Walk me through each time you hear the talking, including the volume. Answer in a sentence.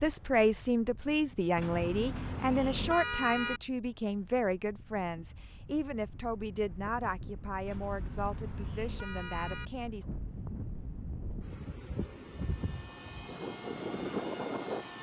The talking can be heard from 0.0 to 10.1 s, getting quieter.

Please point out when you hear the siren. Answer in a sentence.
You can't hear the siren here.